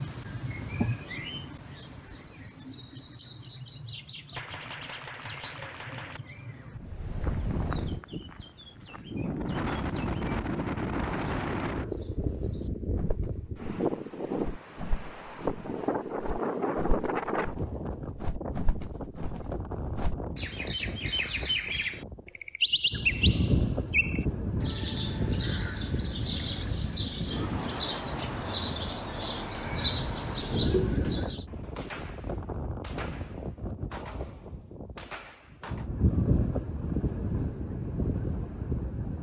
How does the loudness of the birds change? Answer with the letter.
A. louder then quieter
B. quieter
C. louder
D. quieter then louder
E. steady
D.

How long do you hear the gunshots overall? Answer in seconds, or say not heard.
6 s.